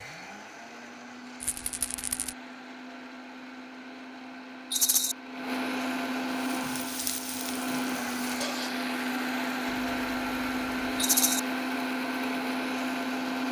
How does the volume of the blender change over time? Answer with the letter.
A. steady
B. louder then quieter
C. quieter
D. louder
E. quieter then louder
D.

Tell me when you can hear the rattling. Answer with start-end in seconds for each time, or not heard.
1.4-2.4, 4.7-5.2, 10.9-11.4.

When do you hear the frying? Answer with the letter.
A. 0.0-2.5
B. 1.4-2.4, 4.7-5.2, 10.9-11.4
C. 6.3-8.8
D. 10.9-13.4
C.